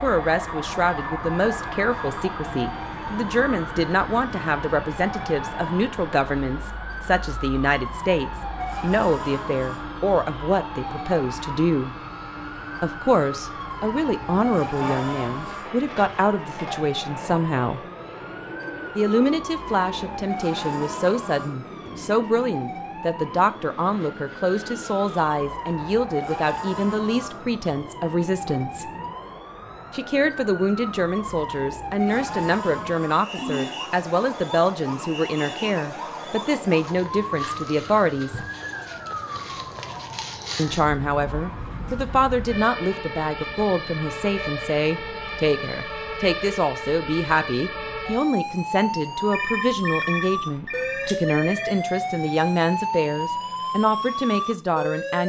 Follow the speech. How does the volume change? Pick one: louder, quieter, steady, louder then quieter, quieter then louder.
steady.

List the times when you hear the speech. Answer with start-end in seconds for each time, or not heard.
0.0-11.9, 12.8-17.8, 18.9-28.9, 29.9-38.4, 40.5-55.2.